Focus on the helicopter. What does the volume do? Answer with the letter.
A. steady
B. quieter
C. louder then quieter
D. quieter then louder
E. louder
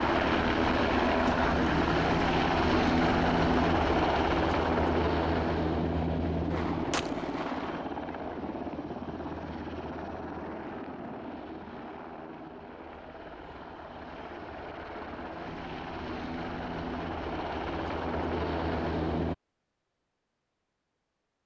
D.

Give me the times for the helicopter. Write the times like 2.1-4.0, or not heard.
0.0-19.4.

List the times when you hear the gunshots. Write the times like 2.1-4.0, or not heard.
6.5-7.8.